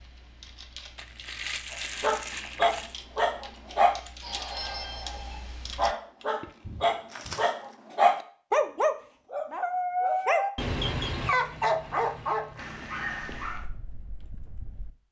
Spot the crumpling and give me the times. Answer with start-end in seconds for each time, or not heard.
0.9-3.0, 7.1-7.8, 11.2-13.6.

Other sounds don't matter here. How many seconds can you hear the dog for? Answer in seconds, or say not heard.
12 s.